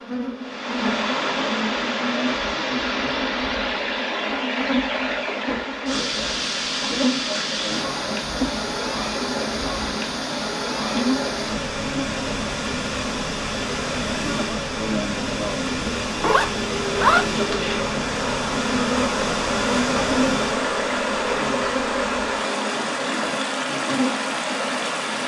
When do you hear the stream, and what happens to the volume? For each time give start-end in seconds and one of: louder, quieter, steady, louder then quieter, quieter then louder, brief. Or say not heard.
0.0-25.2 steady.